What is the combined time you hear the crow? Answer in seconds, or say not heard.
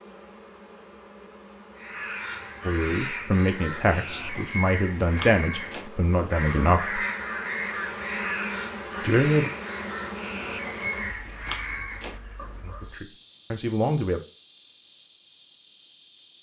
11 s.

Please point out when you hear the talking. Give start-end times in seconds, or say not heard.
2.6-7.0, 9.0-9.5, 12.6-14.2.